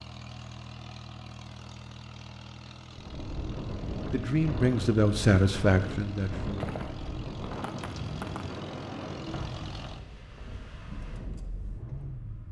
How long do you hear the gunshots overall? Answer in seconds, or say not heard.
2 s.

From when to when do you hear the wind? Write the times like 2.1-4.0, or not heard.
2.9-12.4.